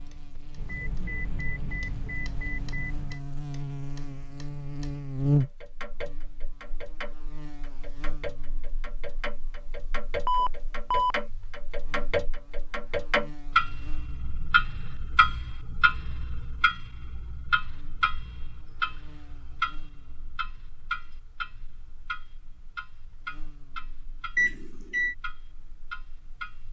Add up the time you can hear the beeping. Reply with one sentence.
You can hear the beeping for 4 seconds altogether.